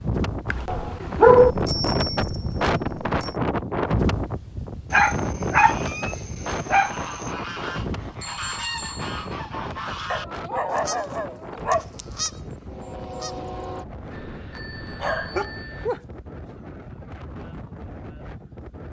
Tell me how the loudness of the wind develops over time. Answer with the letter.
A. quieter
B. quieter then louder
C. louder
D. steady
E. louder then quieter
A.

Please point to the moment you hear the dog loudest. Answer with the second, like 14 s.
1 s.